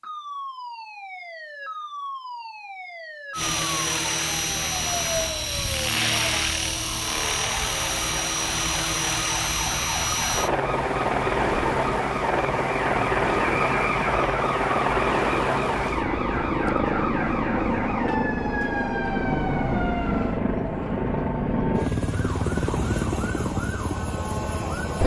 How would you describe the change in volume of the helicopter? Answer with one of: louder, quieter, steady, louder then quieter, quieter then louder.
steady.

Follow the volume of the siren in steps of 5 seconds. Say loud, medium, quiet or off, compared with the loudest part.
medium, medium, loud, loud, medium.